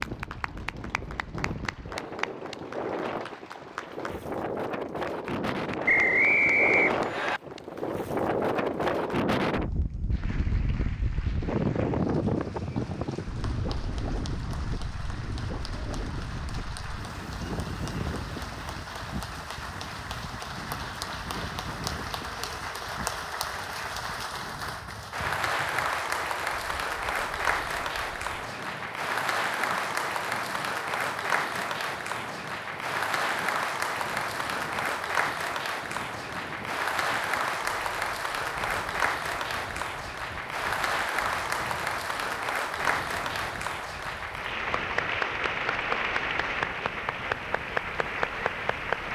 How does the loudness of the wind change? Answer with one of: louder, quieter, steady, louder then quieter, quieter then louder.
quieter.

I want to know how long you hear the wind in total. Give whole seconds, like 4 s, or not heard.
49 s.